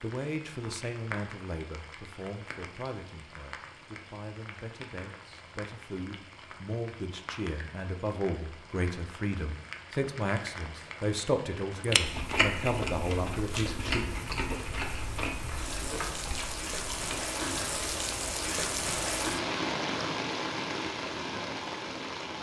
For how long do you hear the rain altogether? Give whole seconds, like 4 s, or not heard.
22 s.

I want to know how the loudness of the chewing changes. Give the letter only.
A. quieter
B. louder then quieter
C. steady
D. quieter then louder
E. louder
A.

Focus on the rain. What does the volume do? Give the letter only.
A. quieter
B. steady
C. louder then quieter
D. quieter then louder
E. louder
E.